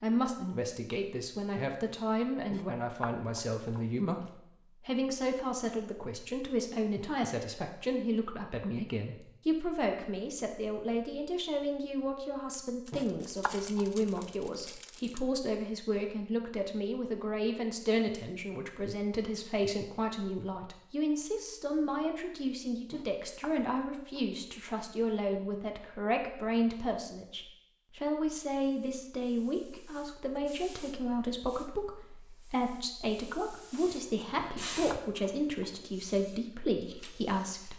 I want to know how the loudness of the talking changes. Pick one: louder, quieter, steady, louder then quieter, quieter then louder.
steady.